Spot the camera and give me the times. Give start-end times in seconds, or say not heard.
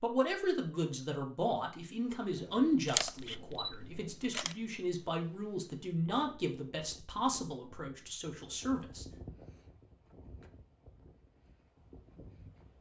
2.9-4.5.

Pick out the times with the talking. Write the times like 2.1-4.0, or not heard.
0.0-9.1.